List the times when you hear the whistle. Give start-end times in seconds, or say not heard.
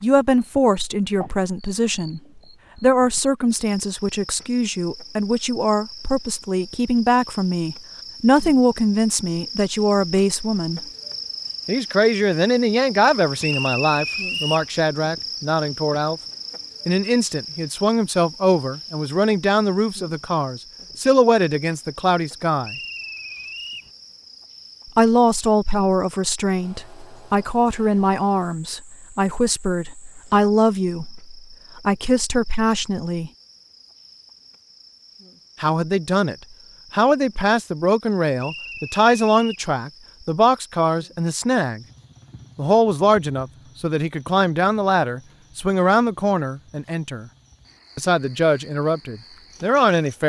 13.4-14.7, 22.6-23.9, 38.4-39.6.